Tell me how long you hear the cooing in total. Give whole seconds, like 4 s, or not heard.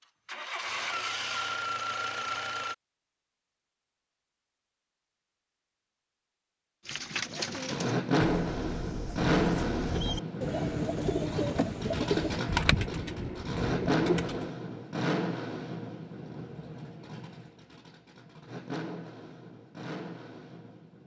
8 s.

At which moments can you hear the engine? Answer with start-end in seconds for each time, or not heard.
0.0-2.8, 7.3-21.0.